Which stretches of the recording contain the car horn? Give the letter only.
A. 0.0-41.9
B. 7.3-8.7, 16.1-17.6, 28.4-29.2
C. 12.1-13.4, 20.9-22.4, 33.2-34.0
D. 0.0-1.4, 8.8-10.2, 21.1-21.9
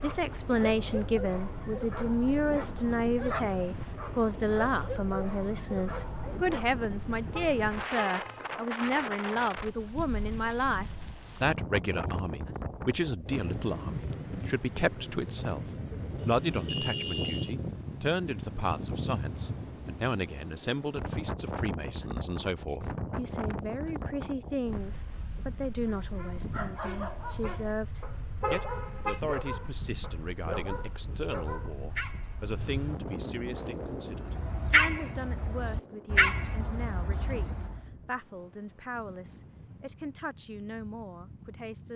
B.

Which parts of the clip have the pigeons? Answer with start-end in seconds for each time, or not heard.
not heard.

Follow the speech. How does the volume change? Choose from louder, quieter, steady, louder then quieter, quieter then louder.
quieter.